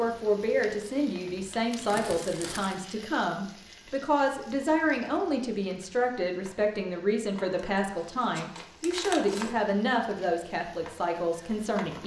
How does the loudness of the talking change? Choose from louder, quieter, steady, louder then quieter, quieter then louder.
steady.